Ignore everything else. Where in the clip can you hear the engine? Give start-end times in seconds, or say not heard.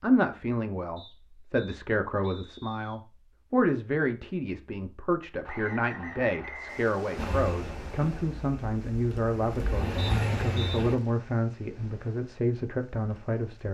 7.2-11.0.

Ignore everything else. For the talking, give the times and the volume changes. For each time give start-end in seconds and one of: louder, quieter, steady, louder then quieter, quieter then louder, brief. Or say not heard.
0.0-13.7 steady.